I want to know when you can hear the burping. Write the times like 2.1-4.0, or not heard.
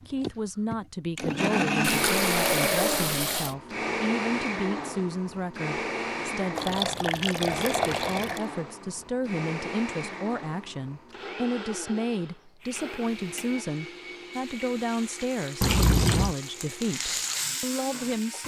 not heard.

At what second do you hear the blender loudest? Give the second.
2 s.